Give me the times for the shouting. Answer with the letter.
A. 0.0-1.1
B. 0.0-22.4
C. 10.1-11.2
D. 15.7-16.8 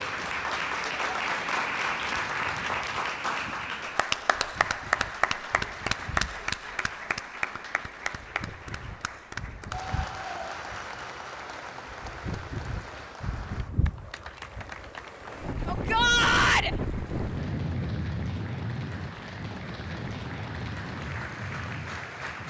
D.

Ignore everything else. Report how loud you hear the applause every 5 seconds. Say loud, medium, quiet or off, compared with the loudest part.
loud, loud, medium, quiet, medium.